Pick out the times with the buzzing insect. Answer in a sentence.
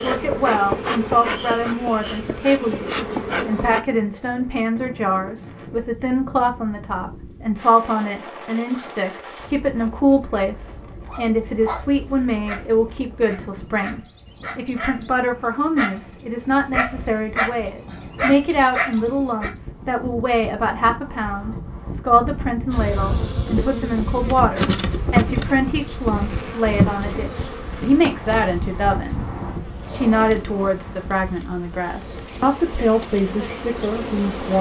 You can hear the buzzing insect from 0.0 to 3.8 s and from 22.7 to 34.5 s.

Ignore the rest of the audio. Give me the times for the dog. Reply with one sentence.
You can hear the dog from 11.1 to 19.5 s.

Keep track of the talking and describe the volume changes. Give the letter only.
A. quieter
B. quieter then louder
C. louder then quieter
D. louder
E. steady
E.